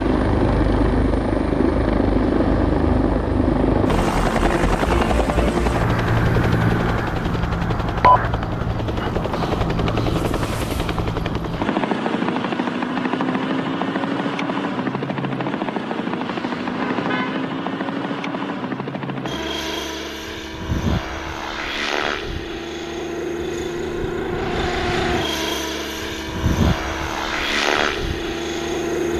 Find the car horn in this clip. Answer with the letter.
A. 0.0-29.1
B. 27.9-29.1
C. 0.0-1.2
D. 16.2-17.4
D.